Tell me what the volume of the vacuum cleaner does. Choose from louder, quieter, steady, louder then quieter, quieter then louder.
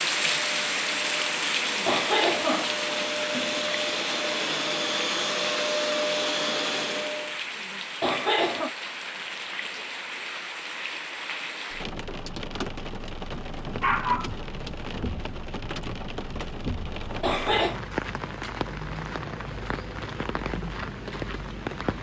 louder.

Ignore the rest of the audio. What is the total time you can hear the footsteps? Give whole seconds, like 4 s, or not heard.
not heard.